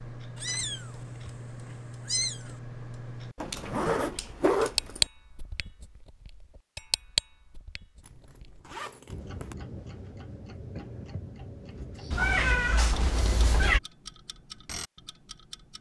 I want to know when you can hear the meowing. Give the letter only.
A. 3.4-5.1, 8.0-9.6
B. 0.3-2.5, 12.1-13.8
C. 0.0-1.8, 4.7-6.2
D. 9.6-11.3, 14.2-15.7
B.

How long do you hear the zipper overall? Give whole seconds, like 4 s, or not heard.
3 s.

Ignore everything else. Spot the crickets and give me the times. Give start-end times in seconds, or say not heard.
not heard.